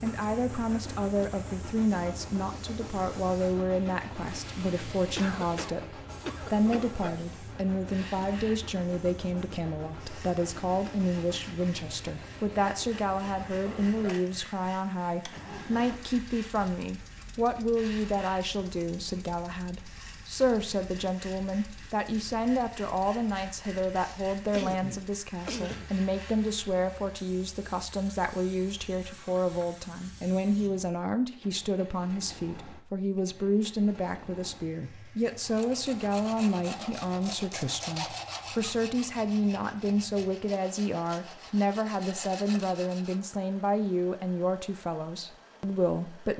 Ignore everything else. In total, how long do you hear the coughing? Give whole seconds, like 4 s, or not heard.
4 s.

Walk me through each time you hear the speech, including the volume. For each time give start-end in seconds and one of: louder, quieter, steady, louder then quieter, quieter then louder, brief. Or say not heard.
0.0-46.3 steady.